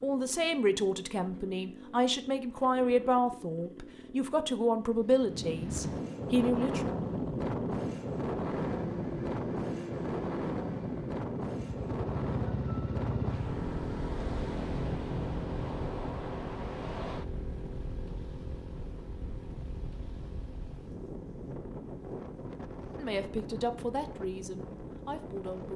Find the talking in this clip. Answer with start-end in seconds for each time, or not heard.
0.0-7.0, 22.9-25.7.